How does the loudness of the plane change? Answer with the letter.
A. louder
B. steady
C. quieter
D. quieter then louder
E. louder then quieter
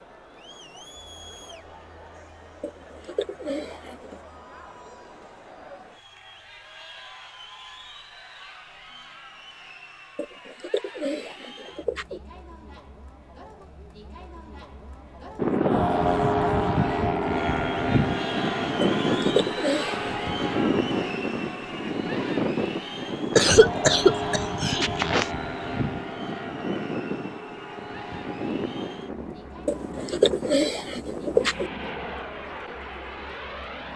C.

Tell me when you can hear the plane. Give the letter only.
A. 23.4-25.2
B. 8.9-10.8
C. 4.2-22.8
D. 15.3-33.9
D.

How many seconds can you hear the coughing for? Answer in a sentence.
The coughing can be heard for 2 seconds in total.